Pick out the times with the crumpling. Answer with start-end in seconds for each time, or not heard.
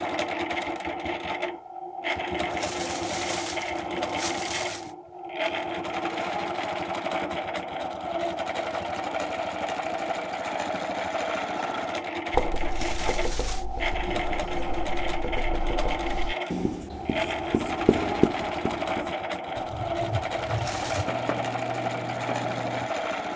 2.4-4.9, 12.6-13.7, 20.4-21.1.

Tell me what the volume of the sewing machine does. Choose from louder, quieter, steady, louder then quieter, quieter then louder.
steady.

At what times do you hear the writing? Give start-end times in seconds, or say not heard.
12.3-22.9.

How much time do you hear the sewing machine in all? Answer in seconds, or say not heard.
23 s.